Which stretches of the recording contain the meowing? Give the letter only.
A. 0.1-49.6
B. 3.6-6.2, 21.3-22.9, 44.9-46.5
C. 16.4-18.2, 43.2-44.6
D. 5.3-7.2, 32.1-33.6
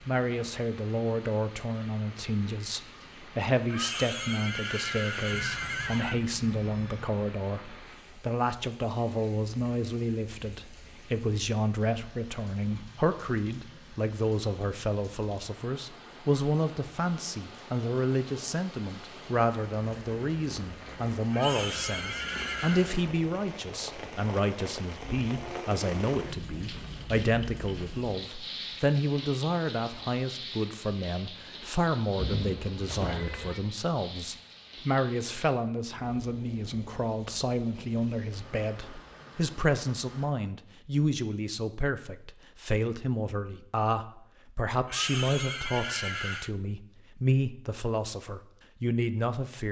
D.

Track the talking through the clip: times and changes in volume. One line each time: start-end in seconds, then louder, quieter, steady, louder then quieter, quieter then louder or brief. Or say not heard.
0.1-49.6 steady.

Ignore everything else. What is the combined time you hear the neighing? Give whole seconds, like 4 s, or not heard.
6 s.